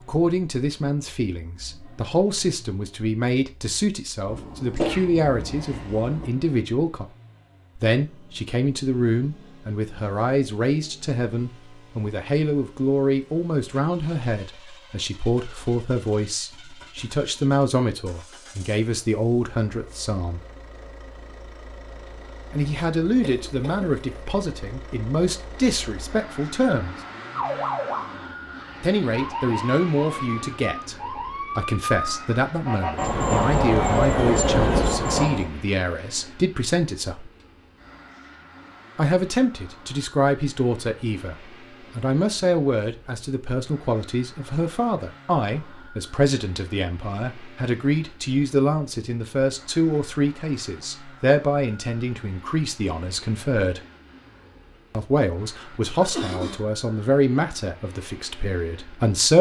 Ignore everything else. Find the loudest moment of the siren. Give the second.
34 s.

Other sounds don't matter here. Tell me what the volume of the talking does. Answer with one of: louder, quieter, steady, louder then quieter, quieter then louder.
steady.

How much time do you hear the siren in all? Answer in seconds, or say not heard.
8 s.